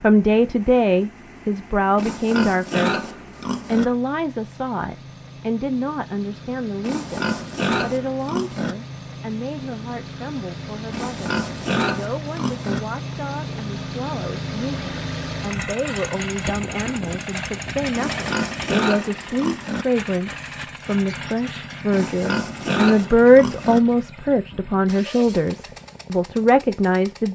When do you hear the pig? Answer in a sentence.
You can hear the pig from 1.9 to 3.9 s, from 6.8 to 8.8 s, from 10.9 to 12.8 s, from 17.9 to 19.9 s and from 21.9 to 23.8 s.